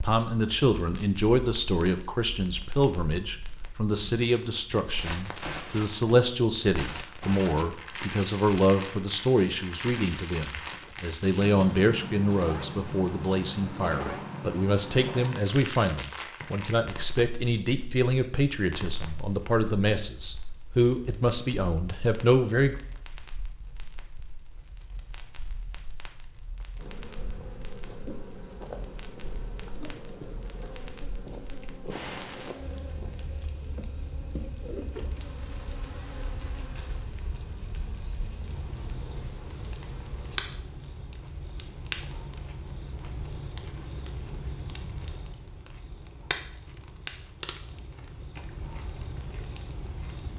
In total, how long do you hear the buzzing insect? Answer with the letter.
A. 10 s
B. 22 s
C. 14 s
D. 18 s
C.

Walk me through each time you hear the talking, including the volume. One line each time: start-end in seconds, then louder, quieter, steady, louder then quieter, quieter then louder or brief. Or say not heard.
0.0-22.8 steady.